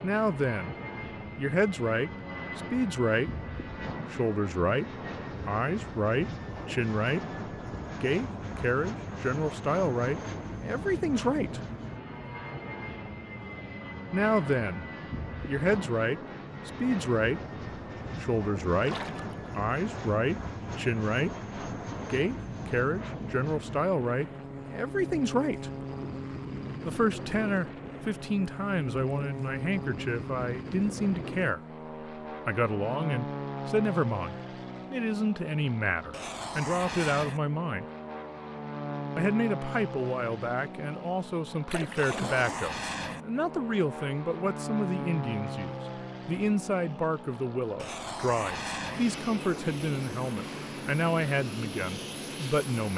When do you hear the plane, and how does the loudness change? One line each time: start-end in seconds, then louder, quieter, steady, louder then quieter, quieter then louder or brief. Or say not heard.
0.0-52.9 steady.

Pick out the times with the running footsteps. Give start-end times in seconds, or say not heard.
not heard.